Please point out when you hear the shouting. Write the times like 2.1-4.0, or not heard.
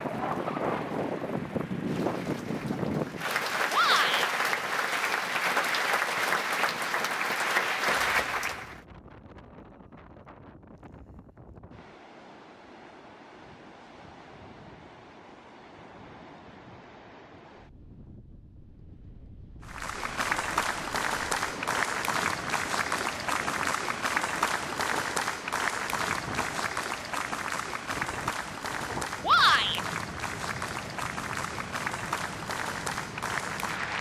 3.7-4.3, 29.2-29.8.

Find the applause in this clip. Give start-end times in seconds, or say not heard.
0.0-8.8, 19.6-33.9.